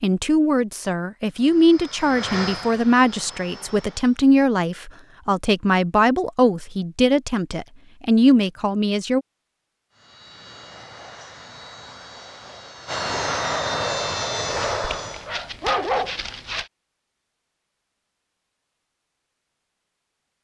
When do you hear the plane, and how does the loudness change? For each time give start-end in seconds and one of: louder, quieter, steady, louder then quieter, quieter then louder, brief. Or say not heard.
1.3-4.2 brief
9.9-15.3 louder.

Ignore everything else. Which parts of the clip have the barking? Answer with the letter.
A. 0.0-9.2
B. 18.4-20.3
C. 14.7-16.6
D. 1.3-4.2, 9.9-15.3
C.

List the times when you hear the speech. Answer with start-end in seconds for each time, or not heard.
0.0-9.2.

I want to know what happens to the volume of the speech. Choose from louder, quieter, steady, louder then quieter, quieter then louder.
steady.